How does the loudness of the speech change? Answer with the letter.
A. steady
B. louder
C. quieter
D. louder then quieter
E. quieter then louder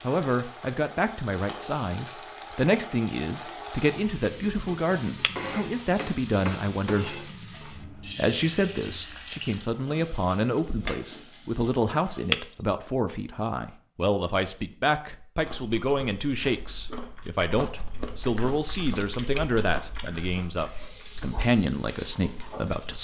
A.